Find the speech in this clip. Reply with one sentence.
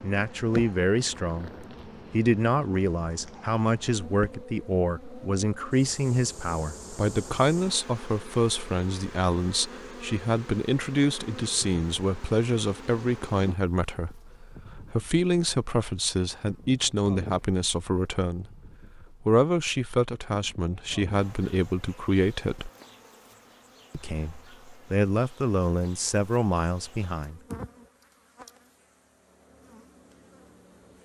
You can hear the speech from 0.0 to 22.7 s and from 23.9 to 27.4 s.